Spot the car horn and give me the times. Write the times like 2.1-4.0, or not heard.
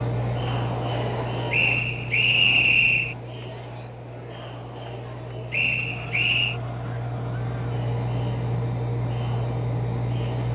not heard.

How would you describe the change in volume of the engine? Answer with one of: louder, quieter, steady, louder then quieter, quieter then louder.
quieter then louder.